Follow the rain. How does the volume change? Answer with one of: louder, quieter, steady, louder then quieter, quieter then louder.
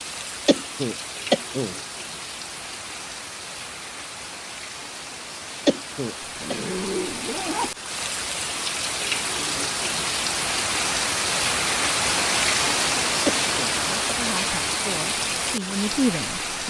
louder.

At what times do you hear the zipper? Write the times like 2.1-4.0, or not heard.
6.2-7.8.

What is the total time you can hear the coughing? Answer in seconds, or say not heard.
3 s.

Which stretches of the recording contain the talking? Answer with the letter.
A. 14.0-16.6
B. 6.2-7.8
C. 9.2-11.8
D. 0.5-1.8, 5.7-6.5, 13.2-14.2
A.